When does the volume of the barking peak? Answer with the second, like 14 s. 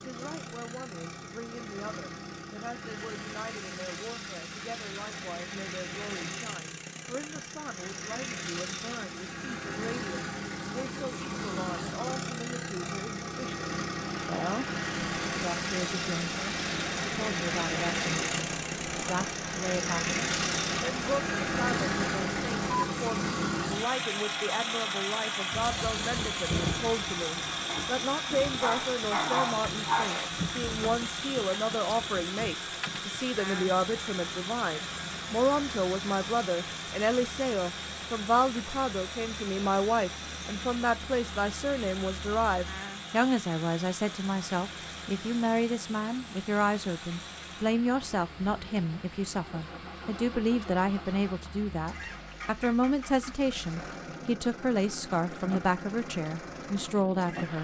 29 s.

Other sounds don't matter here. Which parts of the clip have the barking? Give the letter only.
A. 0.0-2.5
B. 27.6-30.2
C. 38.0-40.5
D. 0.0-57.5
B.